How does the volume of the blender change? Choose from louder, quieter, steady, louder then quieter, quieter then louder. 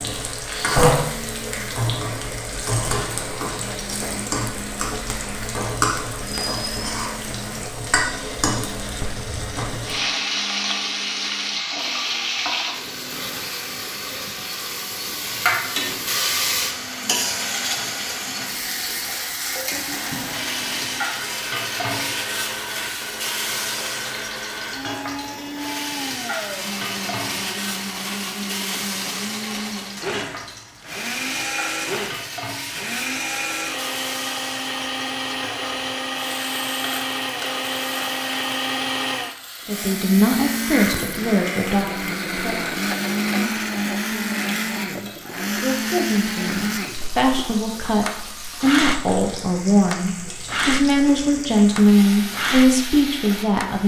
louder.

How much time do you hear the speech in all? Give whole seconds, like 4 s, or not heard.
14 s.